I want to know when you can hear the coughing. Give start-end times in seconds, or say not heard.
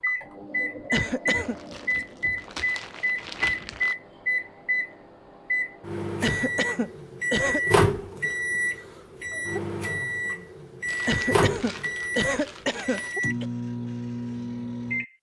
0.9-1.6, 6.2-7.6, 11.1-13.4.